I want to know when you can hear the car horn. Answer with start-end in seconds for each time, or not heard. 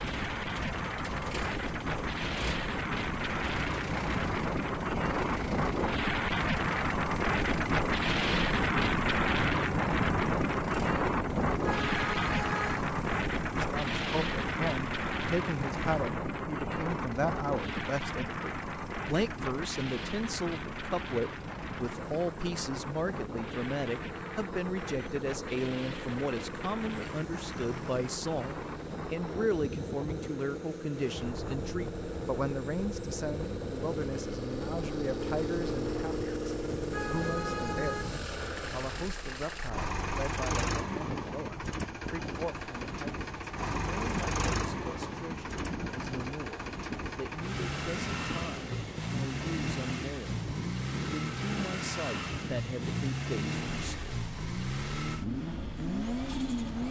11.6-13.3, 36.6-38.2.